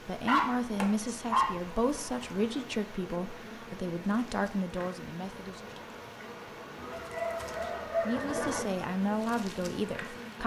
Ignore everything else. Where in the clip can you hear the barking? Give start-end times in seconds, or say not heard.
0.2-1.8, 7.0-8.2.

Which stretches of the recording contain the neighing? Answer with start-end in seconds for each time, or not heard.
6.8-8.7.